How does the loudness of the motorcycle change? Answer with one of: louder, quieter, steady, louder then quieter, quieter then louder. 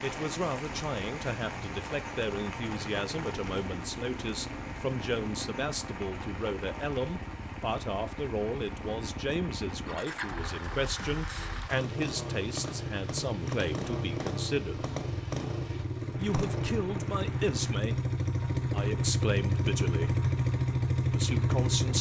louder.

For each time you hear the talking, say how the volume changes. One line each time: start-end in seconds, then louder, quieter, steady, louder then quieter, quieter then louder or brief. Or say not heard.
0.0-14.8 steady
16.1-20.3 quieter then louder
21.0-21.9 brief.